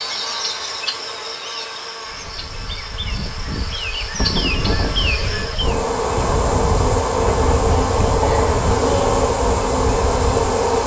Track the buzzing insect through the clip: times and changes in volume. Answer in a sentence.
You can hear the buzzing insect from 0.0 to 10.8 s, getting louder.